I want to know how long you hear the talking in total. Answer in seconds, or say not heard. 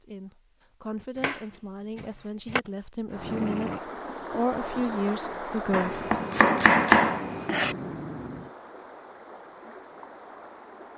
6 s.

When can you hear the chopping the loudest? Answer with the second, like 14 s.
7 s.